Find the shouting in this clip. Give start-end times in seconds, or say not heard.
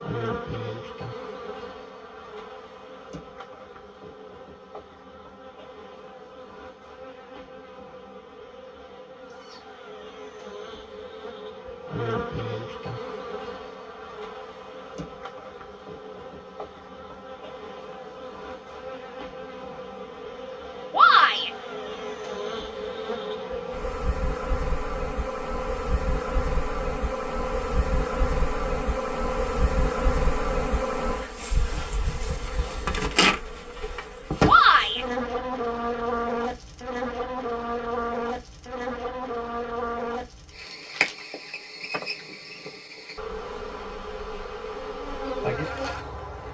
20.9-21.5, 34.5-35.0.